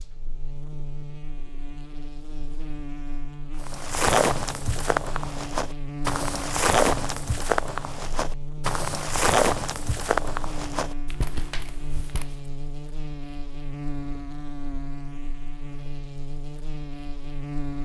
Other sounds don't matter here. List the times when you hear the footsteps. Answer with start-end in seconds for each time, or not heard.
3.6-12.4.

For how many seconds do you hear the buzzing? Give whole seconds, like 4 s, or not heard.
18 s.